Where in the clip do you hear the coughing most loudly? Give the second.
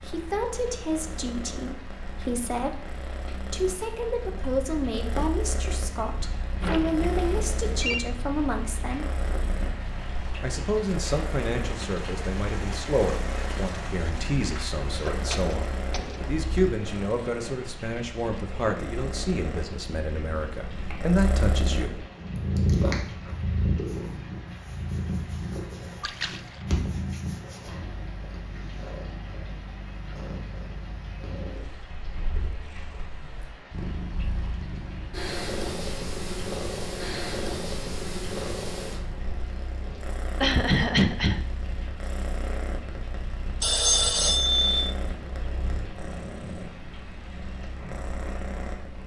41 s.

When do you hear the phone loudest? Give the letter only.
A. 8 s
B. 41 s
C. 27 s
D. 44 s
D.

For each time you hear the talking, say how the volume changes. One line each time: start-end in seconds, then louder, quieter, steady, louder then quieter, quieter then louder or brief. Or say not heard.
0.0-9.2 steady
10.4-22.0 steady.